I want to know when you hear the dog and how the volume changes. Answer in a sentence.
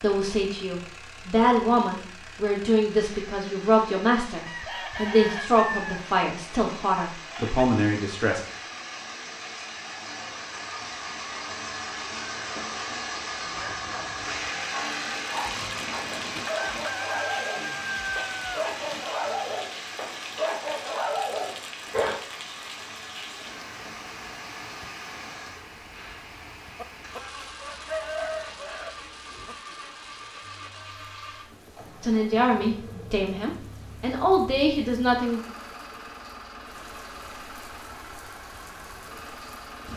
You can hear the dog from 13.4 to 22.1 s, getting louder.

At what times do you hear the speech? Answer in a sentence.
The speech can be heard from 0.0 to 8.6 s and from 32.0 to 35.4 s.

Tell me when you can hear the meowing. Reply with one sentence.
You can't hear the meowing here.